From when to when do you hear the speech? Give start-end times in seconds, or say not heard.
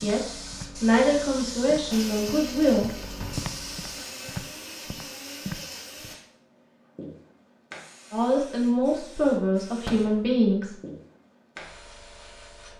0.0-2.9, 8.1-10.8.